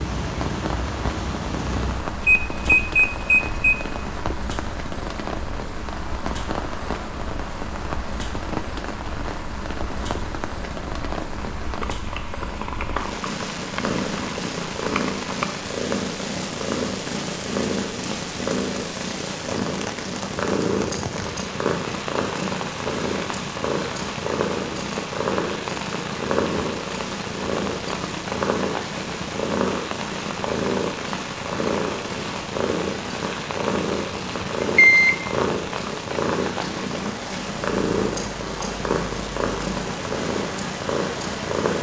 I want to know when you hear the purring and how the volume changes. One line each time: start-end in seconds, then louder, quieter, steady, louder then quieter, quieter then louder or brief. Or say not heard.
0.0-41.7 louder.